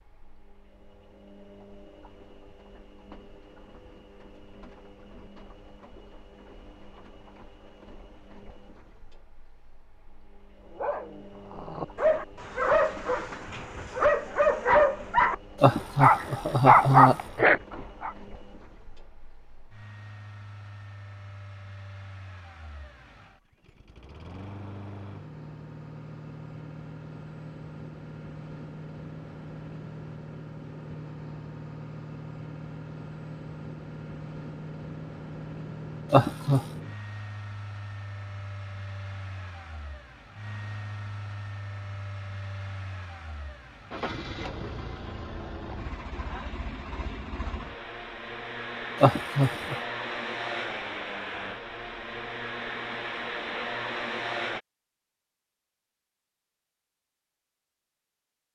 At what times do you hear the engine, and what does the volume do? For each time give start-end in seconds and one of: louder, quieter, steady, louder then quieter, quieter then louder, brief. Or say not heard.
0.0-54.6 louder.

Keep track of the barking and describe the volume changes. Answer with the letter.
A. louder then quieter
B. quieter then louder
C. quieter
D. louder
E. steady
D.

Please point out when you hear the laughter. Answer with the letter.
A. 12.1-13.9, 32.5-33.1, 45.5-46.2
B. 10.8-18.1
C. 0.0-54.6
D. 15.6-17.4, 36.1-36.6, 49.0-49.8
D.